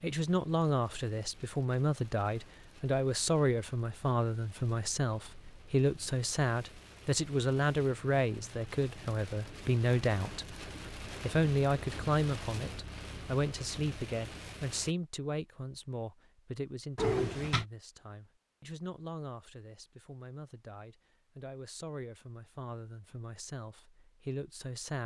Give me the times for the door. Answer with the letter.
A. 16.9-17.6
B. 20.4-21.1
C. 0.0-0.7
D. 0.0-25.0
A.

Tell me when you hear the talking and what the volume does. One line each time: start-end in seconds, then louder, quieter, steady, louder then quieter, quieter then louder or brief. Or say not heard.
0.0-25.0 quieter.